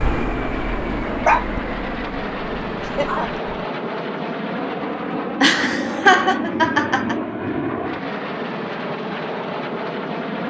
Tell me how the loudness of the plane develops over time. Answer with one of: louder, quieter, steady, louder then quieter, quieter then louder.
steady.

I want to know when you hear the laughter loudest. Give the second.
6 s.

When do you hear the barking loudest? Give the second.
1 s.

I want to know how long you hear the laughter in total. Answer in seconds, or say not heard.
2 s.